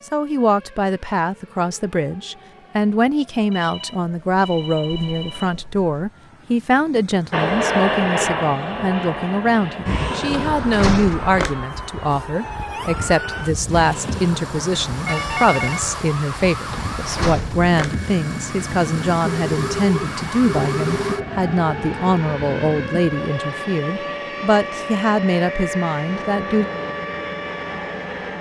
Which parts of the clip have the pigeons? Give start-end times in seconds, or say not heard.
not heard.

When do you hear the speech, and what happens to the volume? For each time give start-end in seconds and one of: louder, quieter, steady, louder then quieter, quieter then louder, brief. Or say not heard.
0.1-26.7 steady.